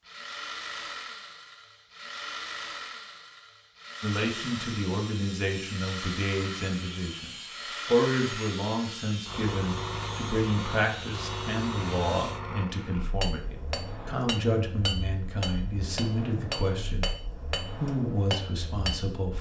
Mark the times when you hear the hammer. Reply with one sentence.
The hammer can be heard from 13.1 to 19.1 s.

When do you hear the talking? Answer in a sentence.
You can hear the talking from 4.0 to 19.3 s.